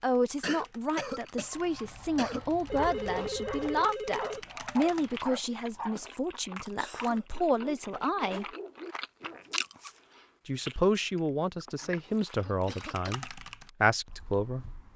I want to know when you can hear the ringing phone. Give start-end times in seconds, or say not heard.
2.6-4.4.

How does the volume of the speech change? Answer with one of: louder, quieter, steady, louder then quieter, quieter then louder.
steady.